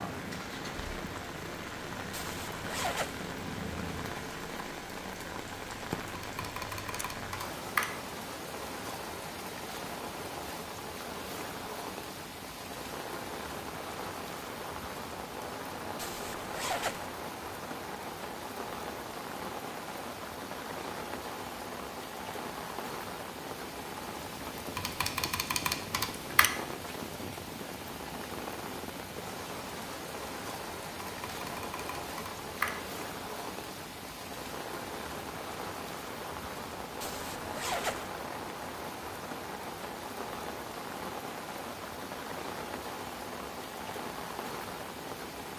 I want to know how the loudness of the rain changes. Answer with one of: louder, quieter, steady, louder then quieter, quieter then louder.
steady.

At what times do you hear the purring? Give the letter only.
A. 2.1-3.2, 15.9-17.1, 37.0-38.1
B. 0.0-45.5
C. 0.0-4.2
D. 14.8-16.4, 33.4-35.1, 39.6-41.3
C.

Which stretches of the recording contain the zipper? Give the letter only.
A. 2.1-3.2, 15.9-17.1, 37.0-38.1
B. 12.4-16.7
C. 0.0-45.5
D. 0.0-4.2
A.